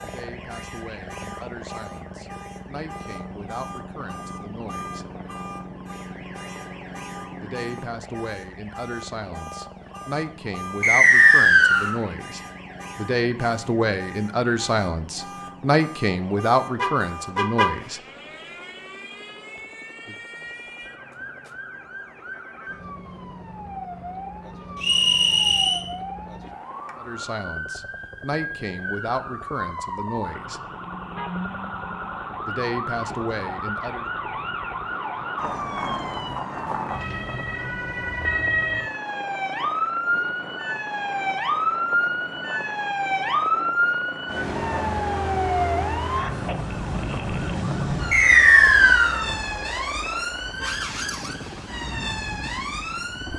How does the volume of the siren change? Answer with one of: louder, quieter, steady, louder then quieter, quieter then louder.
louder.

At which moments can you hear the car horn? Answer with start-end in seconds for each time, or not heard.
16.8-17.8.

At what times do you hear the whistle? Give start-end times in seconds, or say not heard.
10.8-11.9, 24.8-25.9, 48.1-49.2.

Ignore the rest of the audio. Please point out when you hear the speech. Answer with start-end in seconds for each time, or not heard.
0.0-5.0, 7.4-18.0, 26.9-30.6, 32.5-34.0.